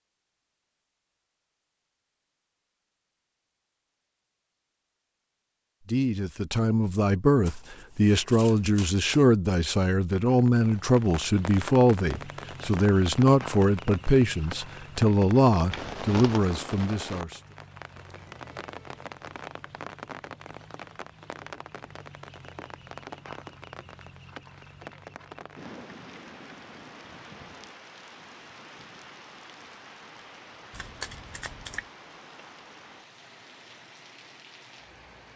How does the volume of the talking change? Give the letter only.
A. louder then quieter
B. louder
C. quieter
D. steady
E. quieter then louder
D.